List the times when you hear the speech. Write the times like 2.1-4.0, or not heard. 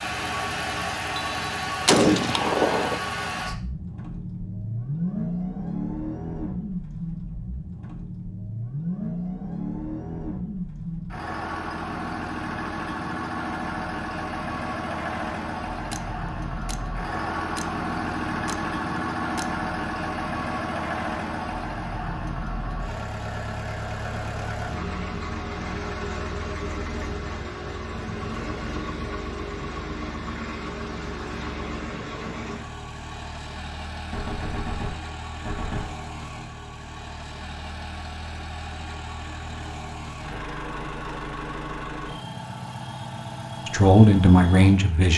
43.6-45.1.